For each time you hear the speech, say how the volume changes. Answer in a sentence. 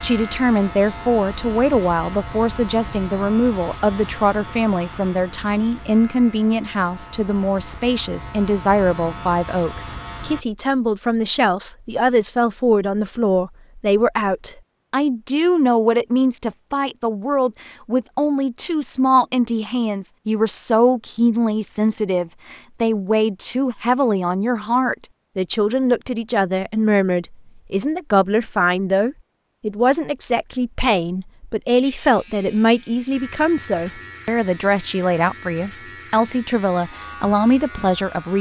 The speech can be heard from 0.0 to 38.3 s, at a steady volume.